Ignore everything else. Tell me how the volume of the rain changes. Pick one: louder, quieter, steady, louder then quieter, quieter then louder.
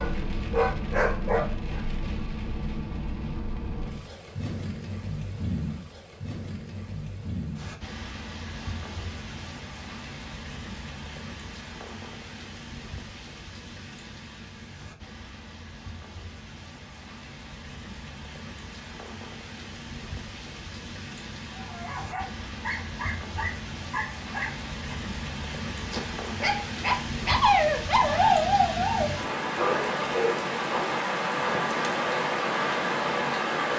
quieter then louder.